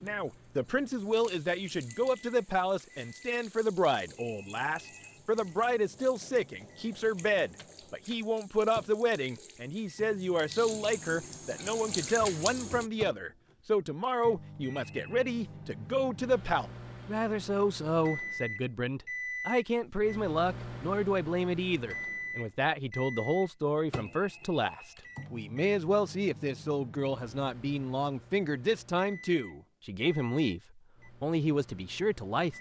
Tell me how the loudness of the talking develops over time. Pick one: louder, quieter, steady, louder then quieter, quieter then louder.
steady.